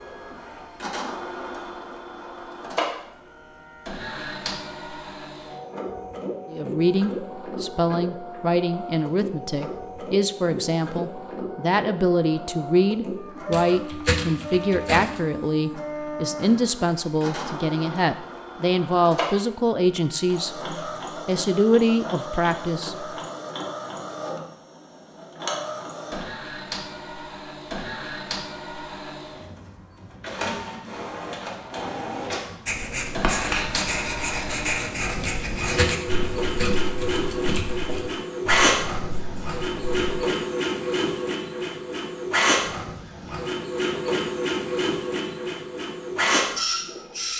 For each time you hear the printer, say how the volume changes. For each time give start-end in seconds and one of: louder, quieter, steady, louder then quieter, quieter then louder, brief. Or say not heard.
0.0-47.3 louder.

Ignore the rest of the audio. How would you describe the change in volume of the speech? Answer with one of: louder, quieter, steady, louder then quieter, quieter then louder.
steady.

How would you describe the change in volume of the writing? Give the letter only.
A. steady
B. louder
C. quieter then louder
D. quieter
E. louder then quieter
D.